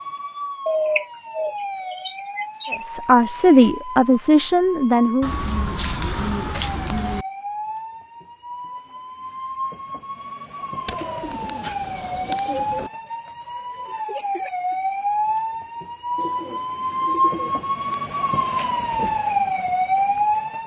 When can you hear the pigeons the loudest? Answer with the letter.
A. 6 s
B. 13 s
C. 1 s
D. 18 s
C.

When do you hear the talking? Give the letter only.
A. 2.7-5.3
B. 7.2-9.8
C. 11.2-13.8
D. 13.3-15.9
A.